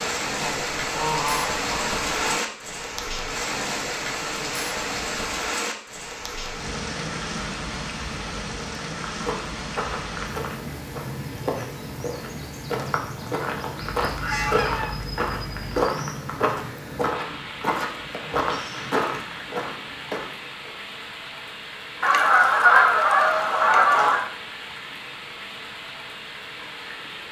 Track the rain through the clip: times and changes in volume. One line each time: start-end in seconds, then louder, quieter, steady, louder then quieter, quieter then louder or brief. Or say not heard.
0.0-27.2 quieter.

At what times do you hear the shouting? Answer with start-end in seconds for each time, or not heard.
not heard.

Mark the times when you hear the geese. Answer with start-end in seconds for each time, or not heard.
0.4-2.4, 14.0-15.9, 22.0-24.2.